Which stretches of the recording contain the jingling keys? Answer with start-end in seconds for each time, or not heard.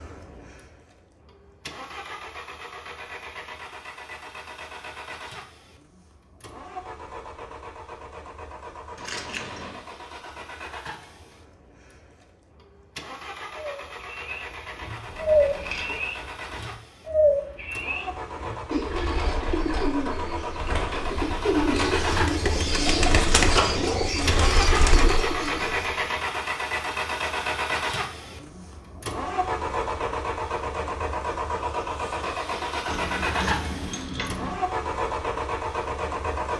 8.9-9.8, 15.1-16.0, 32.9-34.6.